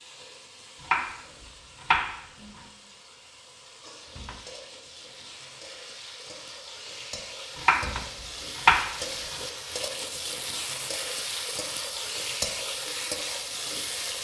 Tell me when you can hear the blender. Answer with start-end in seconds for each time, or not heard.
not heard.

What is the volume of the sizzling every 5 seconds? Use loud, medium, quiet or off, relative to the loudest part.
quiet, medium, loud.